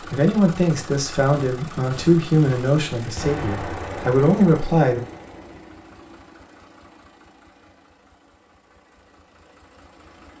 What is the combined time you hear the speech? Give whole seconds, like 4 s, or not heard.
5 s.